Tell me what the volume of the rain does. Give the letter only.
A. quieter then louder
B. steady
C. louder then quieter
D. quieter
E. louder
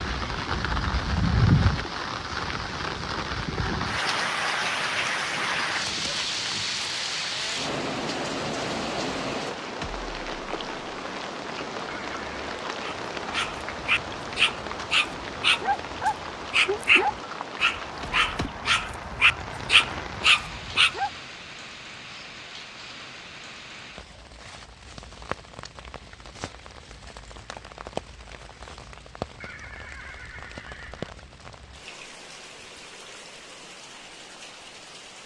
D.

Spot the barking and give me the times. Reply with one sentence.
You can hear the barking from 12.8 to 21.1 s.